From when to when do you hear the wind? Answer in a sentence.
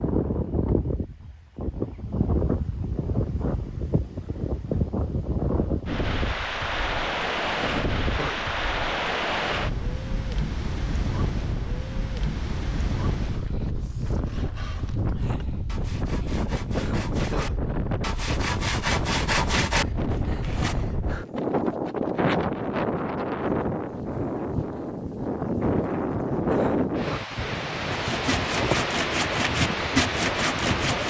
You can hear the wind from 0.0 to 31.0 s.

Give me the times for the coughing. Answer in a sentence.
You can hear the coughing from 7.6 to 8.5 s, from 16.7 to 17.6 s and from 26.4 to 27.2 s.